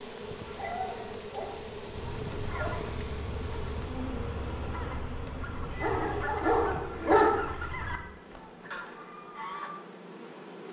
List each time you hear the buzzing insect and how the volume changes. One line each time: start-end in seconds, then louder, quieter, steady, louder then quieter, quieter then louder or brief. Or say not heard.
0.0-10.6 quieter.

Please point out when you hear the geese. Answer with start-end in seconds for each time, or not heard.
0.3-9.7.